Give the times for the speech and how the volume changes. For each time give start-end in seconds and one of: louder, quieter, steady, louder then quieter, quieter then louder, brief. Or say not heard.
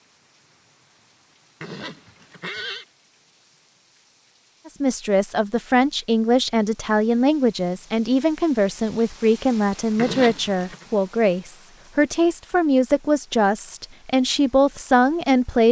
4.7-15.6 steady.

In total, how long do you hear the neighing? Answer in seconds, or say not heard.
2 s.